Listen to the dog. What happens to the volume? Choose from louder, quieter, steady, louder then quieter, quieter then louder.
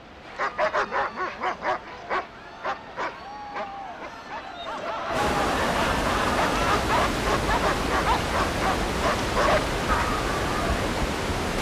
quieter then louder.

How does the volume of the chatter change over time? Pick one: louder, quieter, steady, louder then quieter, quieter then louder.
louder.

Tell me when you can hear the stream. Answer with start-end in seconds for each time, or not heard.
0.0-11.5.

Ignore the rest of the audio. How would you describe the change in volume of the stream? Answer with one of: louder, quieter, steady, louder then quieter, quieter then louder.
louder.